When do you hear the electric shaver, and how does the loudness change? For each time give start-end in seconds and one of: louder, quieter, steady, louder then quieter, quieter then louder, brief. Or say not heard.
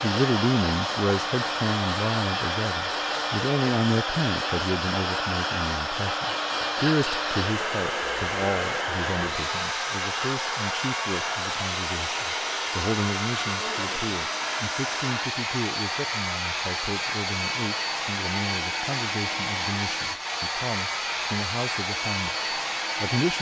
not heard.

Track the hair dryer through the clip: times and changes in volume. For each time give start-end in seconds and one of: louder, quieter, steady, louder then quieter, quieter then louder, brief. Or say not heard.
0.0-23.3 steady.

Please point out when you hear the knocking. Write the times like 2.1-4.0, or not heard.
not heard.